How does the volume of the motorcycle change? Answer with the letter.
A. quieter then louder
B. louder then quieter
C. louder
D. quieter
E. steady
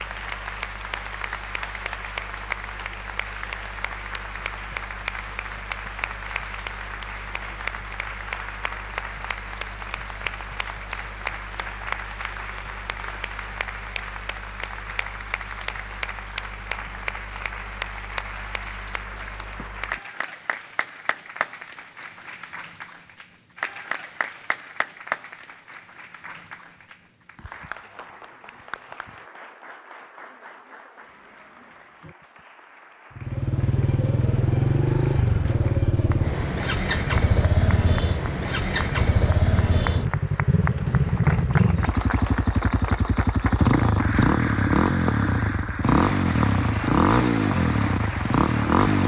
E.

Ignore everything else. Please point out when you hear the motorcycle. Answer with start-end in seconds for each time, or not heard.
33.1-49.0.